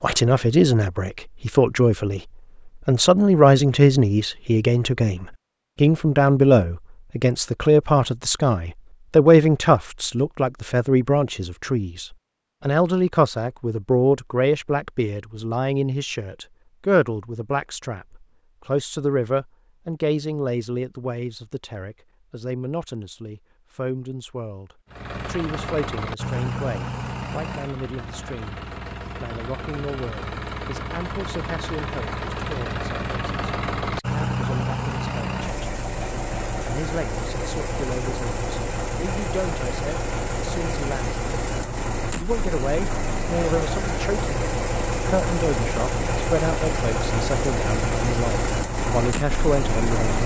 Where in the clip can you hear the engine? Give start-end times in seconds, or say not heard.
24.9-50.2.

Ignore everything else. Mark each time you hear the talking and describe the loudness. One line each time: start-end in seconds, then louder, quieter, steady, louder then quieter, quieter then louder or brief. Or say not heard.
0.0-28.6 quieter
29.2-50.2 louder.